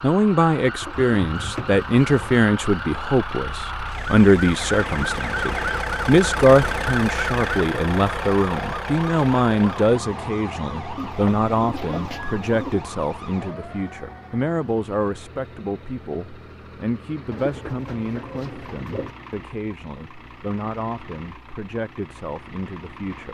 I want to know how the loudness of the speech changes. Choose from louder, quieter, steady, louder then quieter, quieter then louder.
quieter.